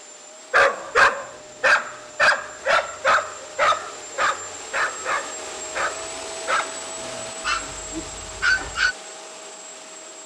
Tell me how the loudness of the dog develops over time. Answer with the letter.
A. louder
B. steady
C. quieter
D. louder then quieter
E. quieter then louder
C.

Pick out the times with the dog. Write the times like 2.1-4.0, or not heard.
0.5-8.9.